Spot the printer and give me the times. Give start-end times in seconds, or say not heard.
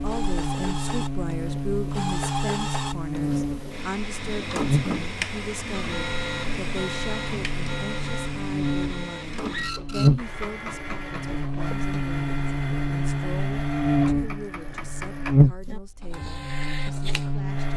0.0-17.7.